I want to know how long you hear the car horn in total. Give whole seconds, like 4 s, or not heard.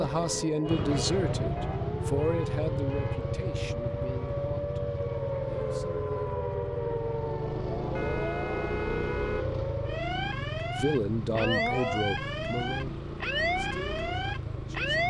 3 s.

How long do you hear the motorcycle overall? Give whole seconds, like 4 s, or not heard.
15 s.